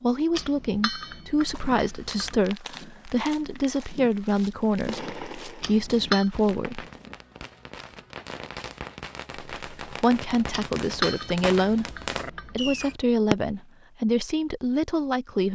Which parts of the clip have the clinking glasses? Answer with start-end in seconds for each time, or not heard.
0.3-2.4, 5.6-6.3, 10.5-12.9.